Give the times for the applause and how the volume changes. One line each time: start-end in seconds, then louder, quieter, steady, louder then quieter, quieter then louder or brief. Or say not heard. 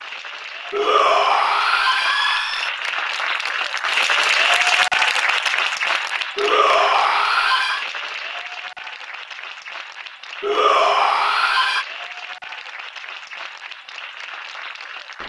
0.0-15.2 louder then quieter.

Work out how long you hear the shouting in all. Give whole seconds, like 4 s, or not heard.
5 s.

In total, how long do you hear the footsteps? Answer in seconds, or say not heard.
not heard.